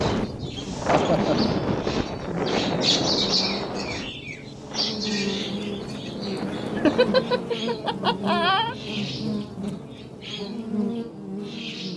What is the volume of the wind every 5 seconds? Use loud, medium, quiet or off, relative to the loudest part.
loud, medium, off.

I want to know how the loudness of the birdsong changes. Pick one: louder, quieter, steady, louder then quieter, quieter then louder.
louder then quieter.